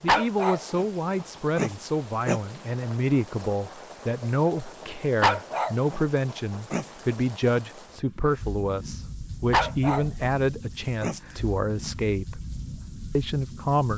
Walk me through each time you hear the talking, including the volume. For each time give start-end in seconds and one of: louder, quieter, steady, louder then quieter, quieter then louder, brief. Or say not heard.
0.0-12.4 steady
13.2-13.9 brief.